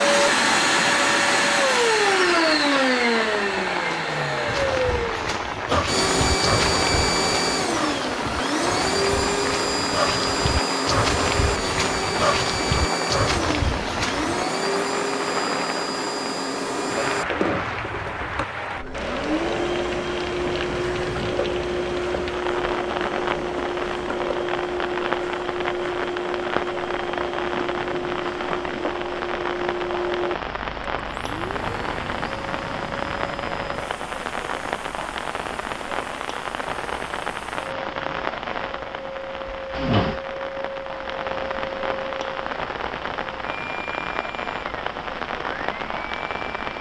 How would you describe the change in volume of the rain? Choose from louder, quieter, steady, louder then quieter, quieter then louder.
steady.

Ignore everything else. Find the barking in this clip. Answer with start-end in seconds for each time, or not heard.
4.5-14.4.